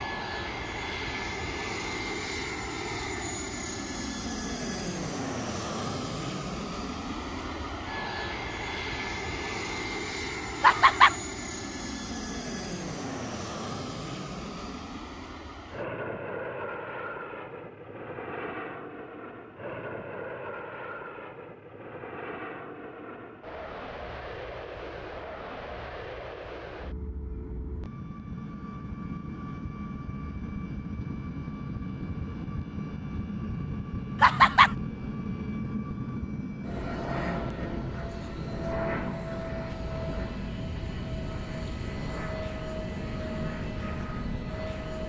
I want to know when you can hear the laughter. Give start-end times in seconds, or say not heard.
10.6-11.2, 34.2-34.7.